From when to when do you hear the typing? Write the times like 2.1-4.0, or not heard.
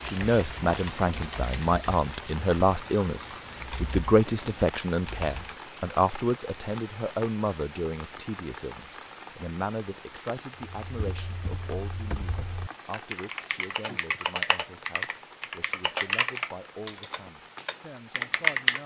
0.0-5.5, 10.8-18.8.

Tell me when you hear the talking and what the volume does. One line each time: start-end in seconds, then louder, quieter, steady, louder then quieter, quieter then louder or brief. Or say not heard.
0.0-18.8 quieter.